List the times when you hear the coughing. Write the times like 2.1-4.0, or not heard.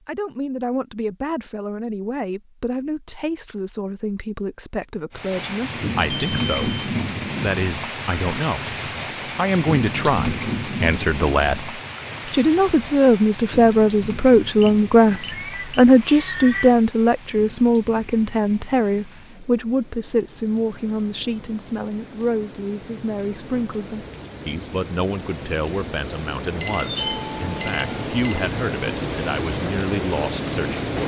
not heard.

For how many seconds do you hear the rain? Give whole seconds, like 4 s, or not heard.
26 s.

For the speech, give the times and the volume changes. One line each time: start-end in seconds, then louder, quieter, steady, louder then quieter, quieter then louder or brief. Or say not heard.
0.1-30.9 louder then quieter.